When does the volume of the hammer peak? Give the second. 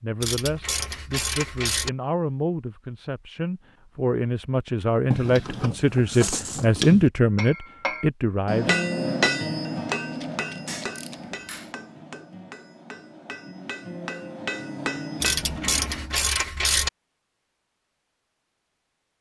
9 s.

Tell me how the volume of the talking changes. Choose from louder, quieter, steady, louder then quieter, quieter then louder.
louder.